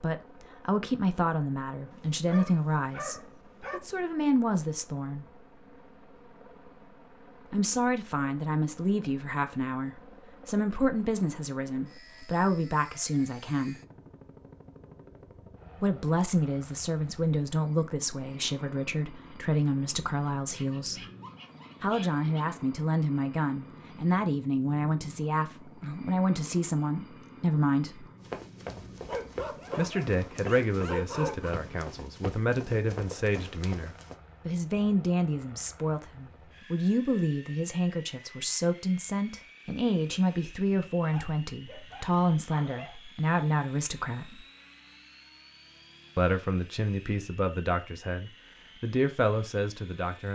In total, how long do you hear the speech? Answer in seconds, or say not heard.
42 s.